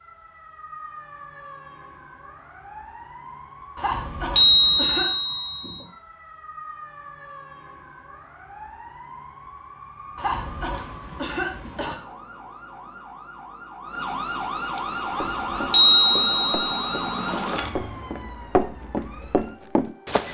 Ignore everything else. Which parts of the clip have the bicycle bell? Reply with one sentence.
You can hear the bicycle bell from 4.3 to 5.8 s and from 15.7 to 17.3 s.